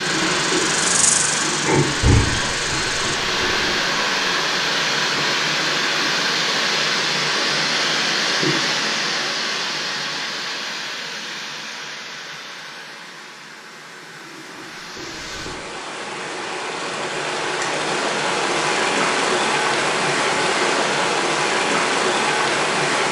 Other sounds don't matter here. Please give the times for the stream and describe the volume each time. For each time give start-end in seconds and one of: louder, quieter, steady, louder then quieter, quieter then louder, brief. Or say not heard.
0.0-23.0 quieter then louder.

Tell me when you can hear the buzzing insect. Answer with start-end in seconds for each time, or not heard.
0.1-3.2.